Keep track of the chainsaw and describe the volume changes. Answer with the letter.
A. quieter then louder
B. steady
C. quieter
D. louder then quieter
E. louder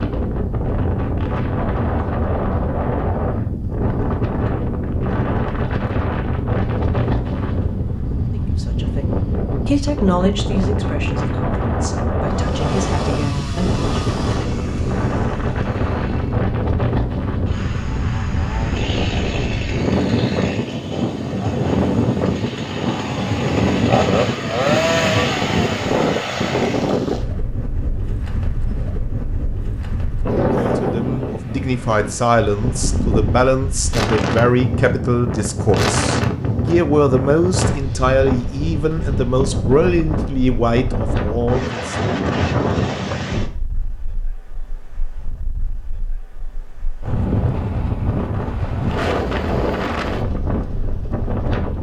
E.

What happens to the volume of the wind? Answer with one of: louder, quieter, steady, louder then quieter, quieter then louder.
steady.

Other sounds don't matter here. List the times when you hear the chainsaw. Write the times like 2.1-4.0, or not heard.
12.3-27.1.